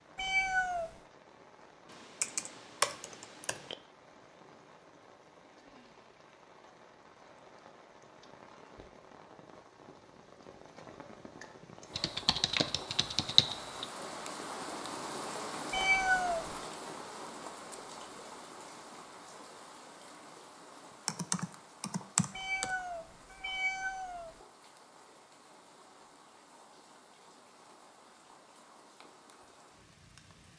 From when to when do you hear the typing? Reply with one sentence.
You can hear the typing from 1.9 to 3.8 s, from 11.9 to 13.8 s and from 21.1 to 22.8 s.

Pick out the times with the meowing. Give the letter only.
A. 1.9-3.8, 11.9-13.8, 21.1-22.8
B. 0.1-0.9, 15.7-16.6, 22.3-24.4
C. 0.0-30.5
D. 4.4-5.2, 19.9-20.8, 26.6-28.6
B.